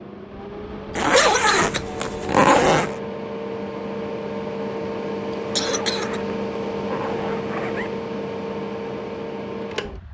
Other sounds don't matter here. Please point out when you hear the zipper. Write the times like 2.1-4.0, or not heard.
0.9-3.0, 5.5-8.0.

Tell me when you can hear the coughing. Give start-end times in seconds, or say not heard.
0.9-1.8, 5.3-6.2.